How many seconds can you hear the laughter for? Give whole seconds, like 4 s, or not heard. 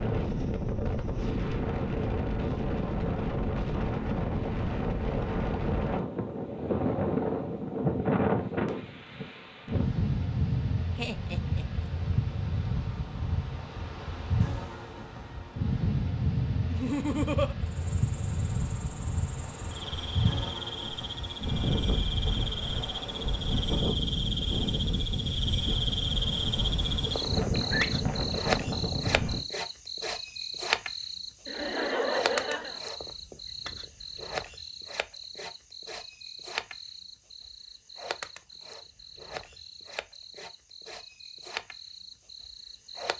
3 s.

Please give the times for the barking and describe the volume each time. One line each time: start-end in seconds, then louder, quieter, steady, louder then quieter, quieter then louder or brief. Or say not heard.
not heard.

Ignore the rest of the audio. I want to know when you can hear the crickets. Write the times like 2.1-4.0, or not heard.
17.6-43.1.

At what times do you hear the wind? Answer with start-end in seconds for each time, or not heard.
0.0-29.4.